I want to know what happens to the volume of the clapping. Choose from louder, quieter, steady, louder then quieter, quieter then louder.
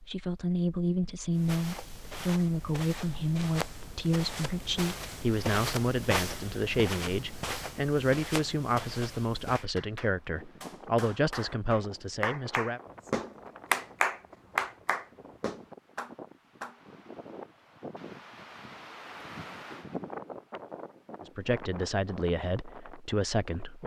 louder then quieter.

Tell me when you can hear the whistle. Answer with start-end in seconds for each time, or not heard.
not heard.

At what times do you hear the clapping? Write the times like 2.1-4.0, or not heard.
9.6-16.8.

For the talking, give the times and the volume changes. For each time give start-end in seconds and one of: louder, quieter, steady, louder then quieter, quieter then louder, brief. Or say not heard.
0.0-12.8 steady
21.2-23.8 brief.